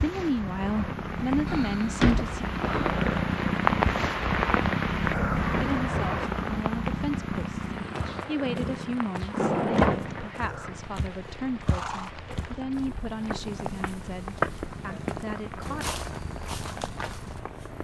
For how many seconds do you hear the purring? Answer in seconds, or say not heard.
18 s.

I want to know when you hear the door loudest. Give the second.
10 s.